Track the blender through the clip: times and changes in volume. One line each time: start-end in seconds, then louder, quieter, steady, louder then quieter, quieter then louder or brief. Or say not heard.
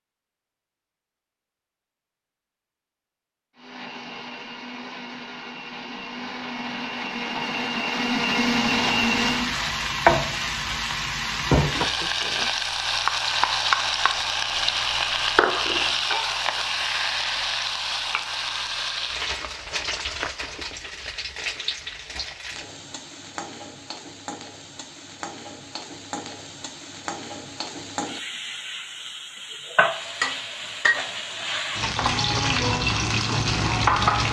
3.5-9.6 louder.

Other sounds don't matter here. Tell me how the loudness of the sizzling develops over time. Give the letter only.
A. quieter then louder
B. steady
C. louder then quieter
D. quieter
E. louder
A.